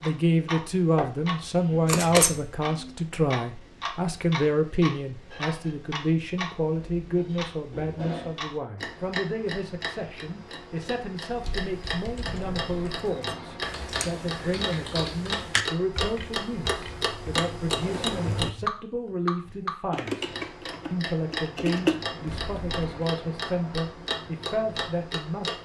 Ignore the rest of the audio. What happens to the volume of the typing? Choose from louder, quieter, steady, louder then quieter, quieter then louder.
louder.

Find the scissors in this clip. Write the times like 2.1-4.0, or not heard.
1.9-2.5, 13.2-14.1.